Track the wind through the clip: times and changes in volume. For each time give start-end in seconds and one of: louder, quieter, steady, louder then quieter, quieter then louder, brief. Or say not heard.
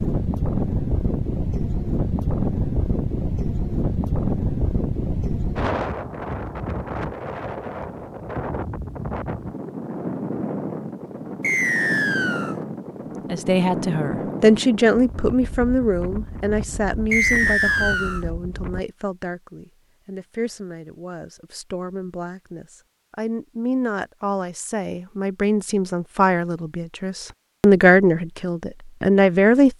0.0-18.9 quieter.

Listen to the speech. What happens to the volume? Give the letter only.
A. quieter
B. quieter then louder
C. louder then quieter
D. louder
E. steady
B.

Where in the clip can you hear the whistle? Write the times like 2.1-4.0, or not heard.
11.4-12.6, 17.1-18.2.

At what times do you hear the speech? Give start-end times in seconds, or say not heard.
13.3-29.7.